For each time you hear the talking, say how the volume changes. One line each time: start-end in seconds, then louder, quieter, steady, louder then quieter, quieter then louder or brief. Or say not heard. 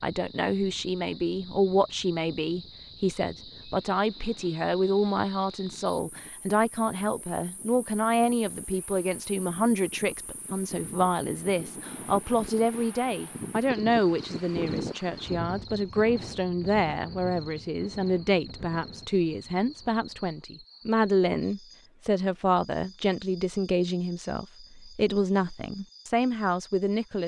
0.0-27.2 steady.